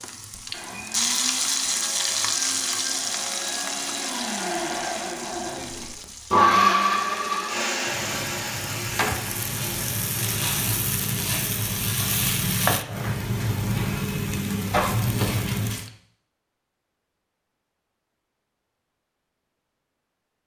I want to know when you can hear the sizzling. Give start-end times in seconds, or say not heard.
0.0-15.9.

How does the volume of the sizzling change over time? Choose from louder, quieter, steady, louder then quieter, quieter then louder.
quieter then louder.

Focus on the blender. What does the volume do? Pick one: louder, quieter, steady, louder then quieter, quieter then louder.
louder then quieter.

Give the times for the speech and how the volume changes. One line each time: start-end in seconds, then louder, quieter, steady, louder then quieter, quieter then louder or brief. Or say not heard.
not heard.